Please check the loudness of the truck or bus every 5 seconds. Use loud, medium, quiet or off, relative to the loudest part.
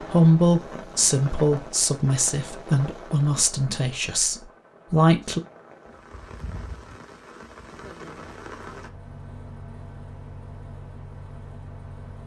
off, loud, loud.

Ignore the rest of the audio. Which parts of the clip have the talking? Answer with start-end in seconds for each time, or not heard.
0.0-5.4.